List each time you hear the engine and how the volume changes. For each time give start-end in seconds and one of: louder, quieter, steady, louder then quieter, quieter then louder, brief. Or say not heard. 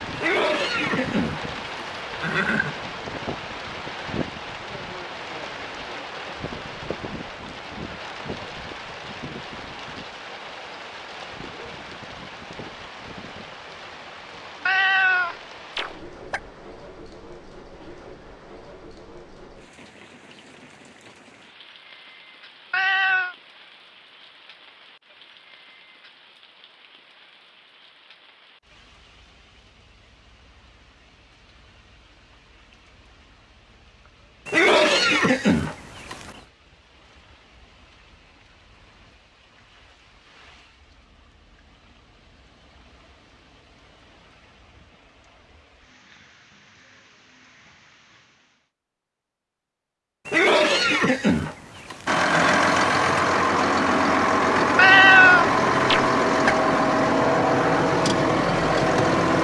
52.0-59.3 steady.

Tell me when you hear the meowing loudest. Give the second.
55 s.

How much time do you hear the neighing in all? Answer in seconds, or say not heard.
7 s.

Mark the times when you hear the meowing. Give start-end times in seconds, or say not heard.
14.7-16.4, 22.7-23.4, 54.8-56.5.